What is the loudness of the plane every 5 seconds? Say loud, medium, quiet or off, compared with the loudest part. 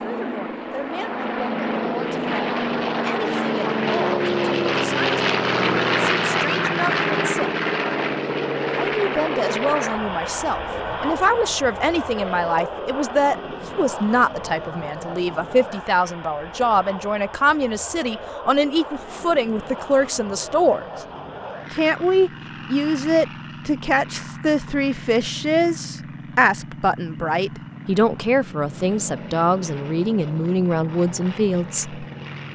loud, loud, medium, quiet, quiet, quiet, quiet.